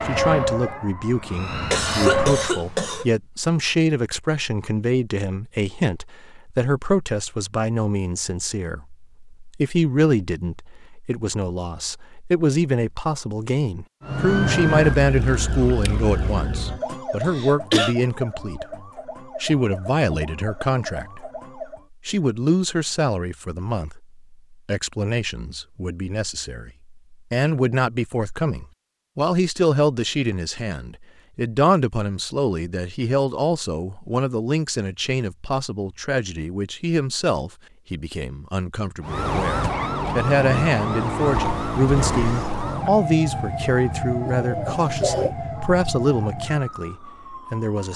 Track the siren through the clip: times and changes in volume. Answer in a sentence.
The siren can be heard briefly from 0.0 to 2.5 s; from 14.0 to 21.9 s, getting quieter; and from 39.0 to 47.9 s, getting quieter.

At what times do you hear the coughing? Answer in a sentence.
You can hear the coughing from 1.7 to 3.0 s, from 16.9 to 17.9 s and from 44.2 to 45.4 s.